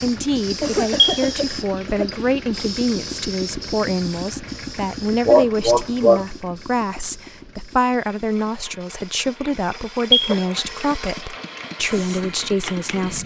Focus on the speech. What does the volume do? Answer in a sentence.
The loudness of the speech stays about the same.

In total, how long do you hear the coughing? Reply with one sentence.
You can hear the coughing for 4 seconds altogether.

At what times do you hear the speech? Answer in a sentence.
The speech can be heard from 0.0 to 13.2 s.